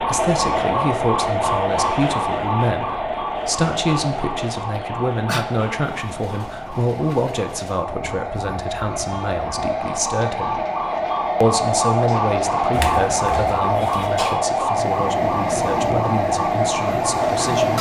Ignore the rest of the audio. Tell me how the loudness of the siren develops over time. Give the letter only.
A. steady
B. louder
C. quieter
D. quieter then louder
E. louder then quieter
D.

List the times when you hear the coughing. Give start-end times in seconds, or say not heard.
4.7-5.5, 12.7-14.3.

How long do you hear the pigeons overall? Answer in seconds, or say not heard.
not heard.